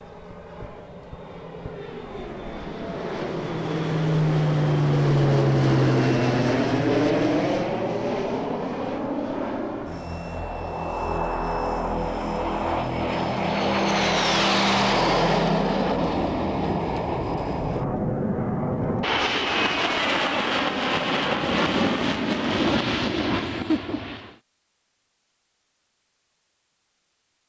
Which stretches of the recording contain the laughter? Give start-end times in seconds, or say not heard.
23.3-24.1.